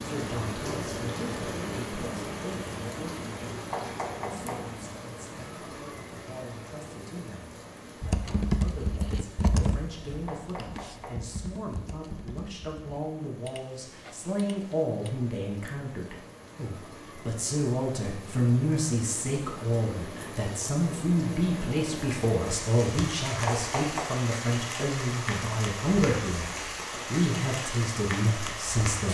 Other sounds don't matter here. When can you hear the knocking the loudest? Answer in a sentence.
The volume of the knocking peaks at 24 seconds.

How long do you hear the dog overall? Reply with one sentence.
You can't hear the dog here.